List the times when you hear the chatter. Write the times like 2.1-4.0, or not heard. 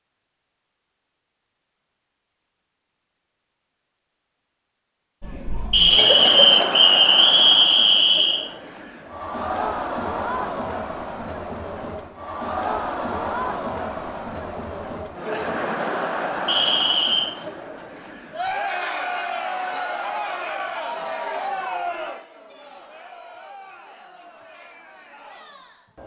5.2-26.0.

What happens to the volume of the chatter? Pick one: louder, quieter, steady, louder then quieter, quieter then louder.
quieter.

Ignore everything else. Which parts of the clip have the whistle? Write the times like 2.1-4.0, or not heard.
5.7-8.4, 16.4-17.3.